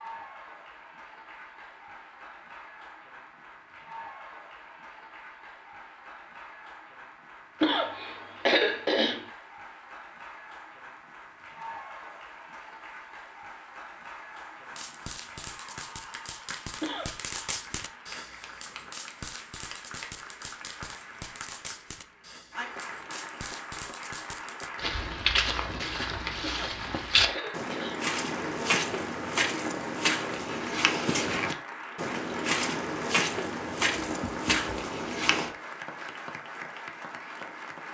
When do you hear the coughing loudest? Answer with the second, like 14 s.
9 s.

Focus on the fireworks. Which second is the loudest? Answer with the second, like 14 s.
17 s.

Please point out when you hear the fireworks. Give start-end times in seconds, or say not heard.
14.7-24.7.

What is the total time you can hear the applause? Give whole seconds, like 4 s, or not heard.
38 s.